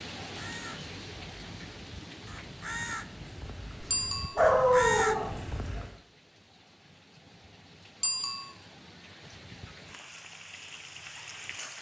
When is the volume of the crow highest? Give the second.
5 s.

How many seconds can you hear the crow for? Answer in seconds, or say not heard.
6 s.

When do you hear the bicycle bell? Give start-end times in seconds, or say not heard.
3.9-4.4, 8.0-8.5.